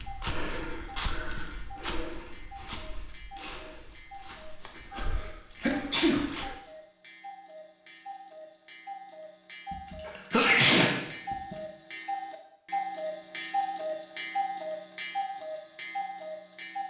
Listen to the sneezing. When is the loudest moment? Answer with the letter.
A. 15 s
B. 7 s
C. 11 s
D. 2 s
C.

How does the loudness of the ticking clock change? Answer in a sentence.
The volume of the ticking clock goes up.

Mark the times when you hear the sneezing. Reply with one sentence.
The sneezing can be heard from 5.6 to 6.3 s and from 9.7 to 11.6 s.